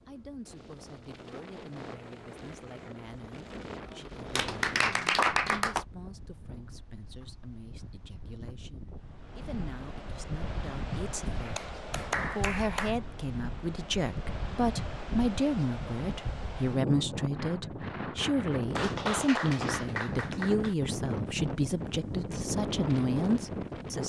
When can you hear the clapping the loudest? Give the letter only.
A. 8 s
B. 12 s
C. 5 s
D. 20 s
C.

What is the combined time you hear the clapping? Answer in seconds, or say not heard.
5 s.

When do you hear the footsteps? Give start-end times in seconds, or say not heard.
not heard.